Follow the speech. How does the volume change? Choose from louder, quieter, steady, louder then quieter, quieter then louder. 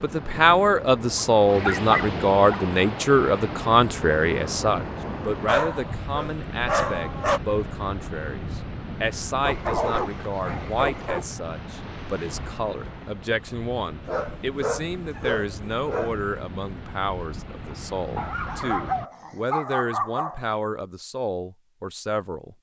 quieter.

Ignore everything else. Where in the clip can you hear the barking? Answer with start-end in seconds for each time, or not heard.
1.1-2.6, 5.5-7.4, 9.4-11.2, 14.1-16.2, 18.1-20.6.